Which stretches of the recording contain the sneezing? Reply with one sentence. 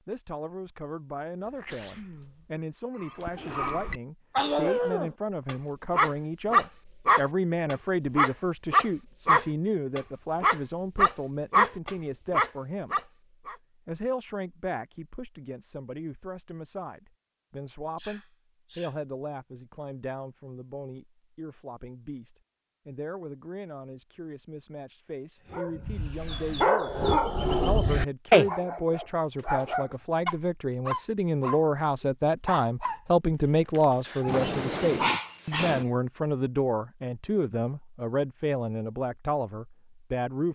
The sneezing can be heard from 1.4 to 2.6 s, from 17.9 to 18.9 s and from 34.0 to 35.9 s.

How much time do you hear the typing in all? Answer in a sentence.
You can't hear the typing here.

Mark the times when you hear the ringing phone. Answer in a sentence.
You can't hear the ringing phone here.